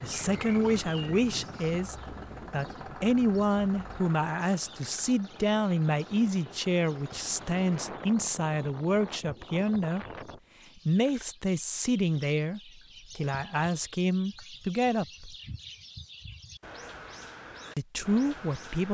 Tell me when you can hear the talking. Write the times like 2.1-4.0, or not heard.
0.0-10.1, 10.8-15.3, 17.8-18.9.